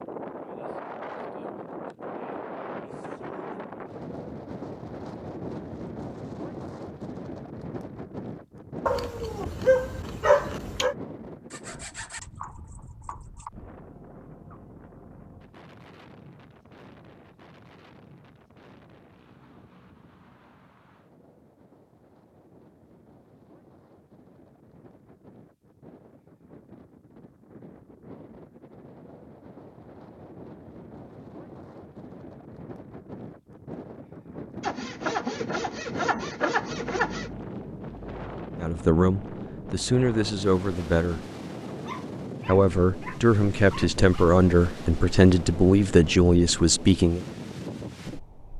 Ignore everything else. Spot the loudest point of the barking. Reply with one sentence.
The loudest moment of the barking is at 10 seconds.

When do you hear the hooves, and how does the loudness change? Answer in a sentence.
The hooves can't be heard in this clip.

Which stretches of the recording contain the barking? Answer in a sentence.
You can hear the barking from 8.8 to 10.9 s and from 41.6 to 44.3 s.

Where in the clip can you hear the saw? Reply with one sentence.
You can hear the saw from 11.5 to 13.5 s and from 34.6 to 37.3 s.